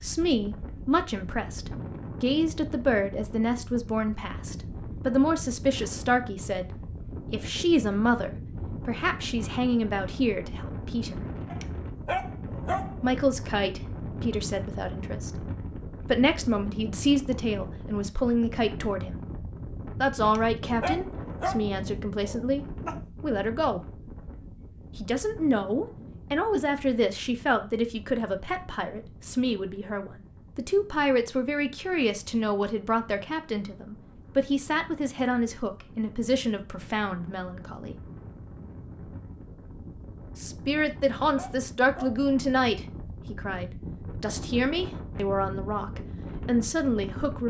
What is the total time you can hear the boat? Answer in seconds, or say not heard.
not heard.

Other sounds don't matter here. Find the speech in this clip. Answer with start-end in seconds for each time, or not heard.
0.0-11.2, 13.0-15.3, 16.1-19.2, 20.0-23.8, 24.9-38.0, 40.4-47.4.